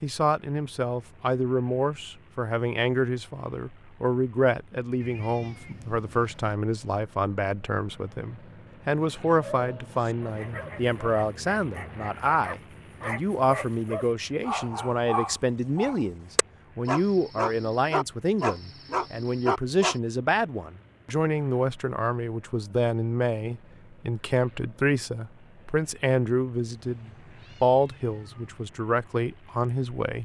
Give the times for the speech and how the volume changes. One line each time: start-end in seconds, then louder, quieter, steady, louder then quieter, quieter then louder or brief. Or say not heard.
0.0-30.2 steady.